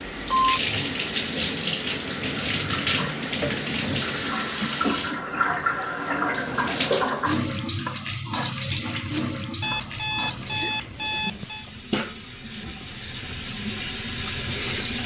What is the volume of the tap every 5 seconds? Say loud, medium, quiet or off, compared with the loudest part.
loud, loud, medium.